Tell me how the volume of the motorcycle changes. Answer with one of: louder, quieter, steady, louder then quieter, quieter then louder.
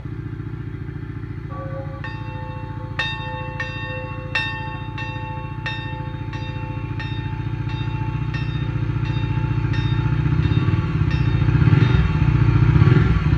louder.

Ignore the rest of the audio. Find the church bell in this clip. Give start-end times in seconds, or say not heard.
1.5-12.3.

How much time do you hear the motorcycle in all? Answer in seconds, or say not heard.
13 s.